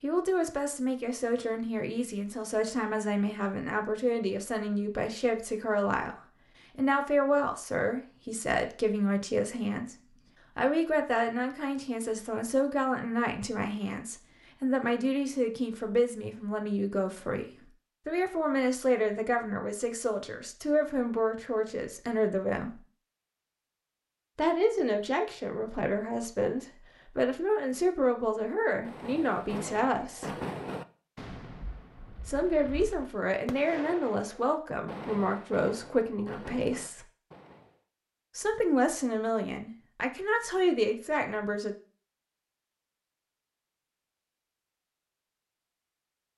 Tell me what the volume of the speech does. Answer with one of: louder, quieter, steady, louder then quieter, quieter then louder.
steady.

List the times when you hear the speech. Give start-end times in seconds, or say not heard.
0.0-9.9, 10.6-22.8, 24.4-30.4, 32.2-37.0, 38.4-41.8.